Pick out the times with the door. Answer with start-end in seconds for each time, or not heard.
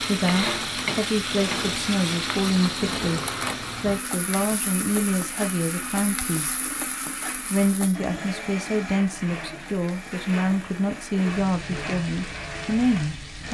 not heard.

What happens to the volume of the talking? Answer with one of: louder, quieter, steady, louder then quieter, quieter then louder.
steady.